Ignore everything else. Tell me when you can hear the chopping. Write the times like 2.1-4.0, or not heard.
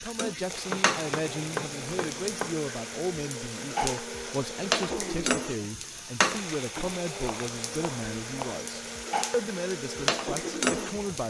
0.7-2.5, 6.8-8.7.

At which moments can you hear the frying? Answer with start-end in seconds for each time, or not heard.
0.0-11.2.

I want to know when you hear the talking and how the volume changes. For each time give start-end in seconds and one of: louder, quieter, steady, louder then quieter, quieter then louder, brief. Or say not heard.
0.0-11.2 steady.